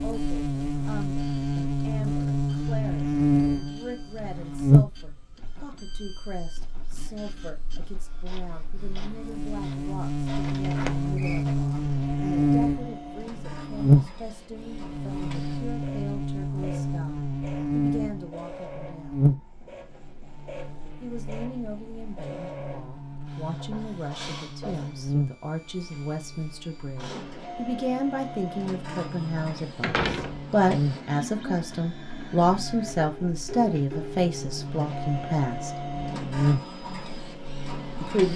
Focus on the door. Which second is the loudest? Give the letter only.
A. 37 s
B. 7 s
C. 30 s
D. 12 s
C.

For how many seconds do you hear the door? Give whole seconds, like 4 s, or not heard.
2 s.